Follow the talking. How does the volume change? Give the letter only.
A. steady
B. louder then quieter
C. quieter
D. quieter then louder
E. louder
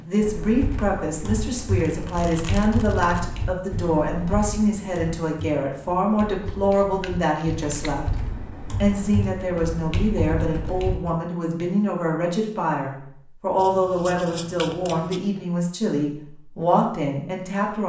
A.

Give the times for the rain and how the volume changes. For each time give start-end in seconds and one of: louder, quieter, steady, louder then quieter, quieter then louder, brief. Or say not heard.
not heard.